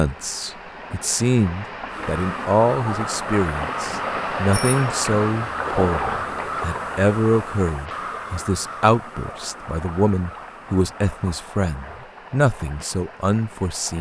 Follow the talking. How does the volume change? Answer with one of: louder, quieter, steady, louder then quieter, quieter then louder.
steady.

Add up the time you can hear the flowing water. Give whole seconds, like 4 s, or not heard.
14 s.